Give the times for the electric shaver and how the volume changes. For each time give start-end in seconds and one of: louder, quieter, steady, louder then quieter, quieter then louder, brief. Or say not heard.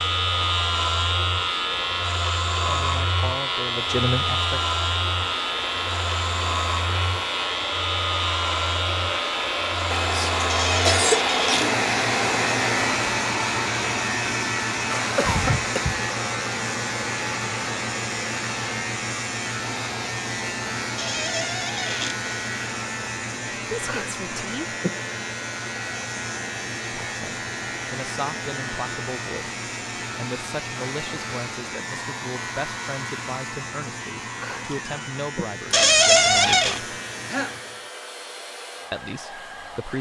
0.0-37.9 quieter.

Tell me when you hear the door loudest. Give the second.
36 s.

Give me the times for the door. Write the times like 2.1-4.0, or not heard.
10.4-11.7, 20.9-22.1, 35.7-36.8.